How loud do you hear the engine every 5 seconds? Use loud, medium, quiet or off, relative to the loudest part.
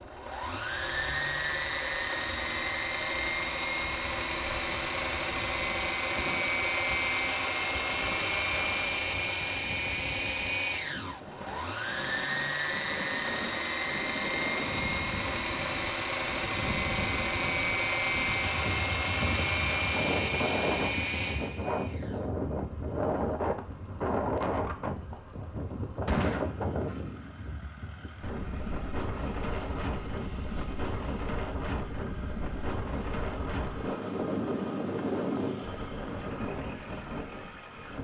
loud, loud, loud, loud, medium, quiet, quiet, quiet.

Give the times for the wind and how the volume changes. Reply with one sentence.
You can hear the wind from 0.0 to 37.9 s, getting louder.